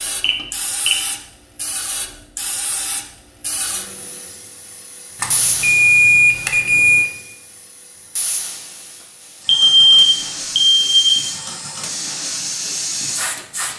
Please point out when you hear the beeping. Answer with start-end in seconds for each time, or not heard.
0.2-0.9, 5.2-7.0, 9.4-11.3.